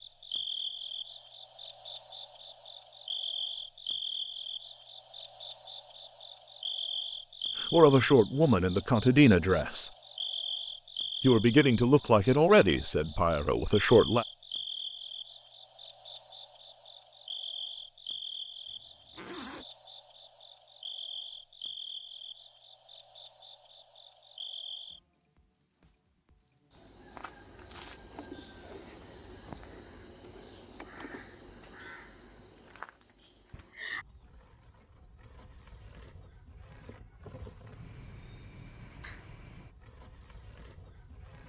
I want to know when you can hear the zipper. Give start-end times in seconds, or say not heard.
18.6-19.6.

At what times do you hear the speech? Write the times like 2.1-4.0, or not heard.
7.6-9.9, 11.2-14.2.